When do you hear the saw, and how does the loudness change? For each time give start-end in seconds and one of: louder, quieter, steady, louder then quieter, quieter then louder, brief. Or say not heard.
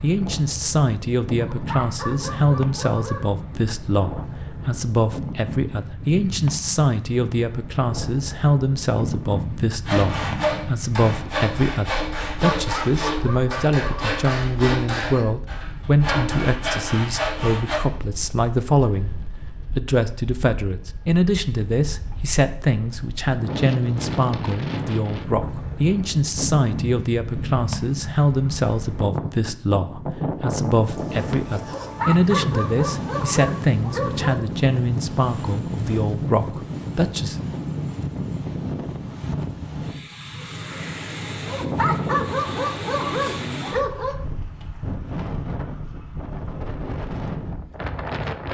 9.8-17.8 steady.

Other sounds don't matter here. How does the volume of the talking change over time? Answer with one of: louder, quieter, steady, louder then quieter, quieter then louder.
steady.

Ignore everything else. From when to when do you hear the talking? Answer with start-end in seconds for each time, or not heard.
0.0-19.1, 19.8-37.4.